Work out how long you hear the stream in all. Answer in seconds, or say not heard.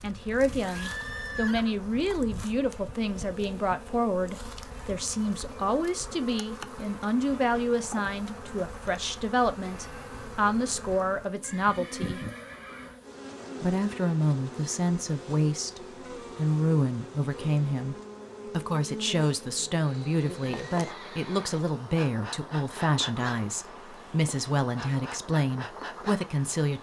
not heard.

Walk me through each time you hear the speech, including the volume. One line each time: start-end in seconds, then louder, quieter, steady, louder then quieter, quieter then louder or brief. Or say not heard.
0.0-12.2 steady
13.6-26.7 steady.